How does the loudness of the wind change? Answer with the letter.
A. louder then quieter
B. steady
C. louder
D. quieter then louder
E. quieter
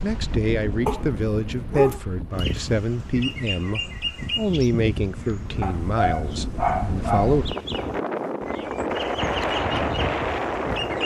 D.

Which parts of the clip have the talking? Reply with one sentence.
You can hear the talking from 0.0 to 7.5 s.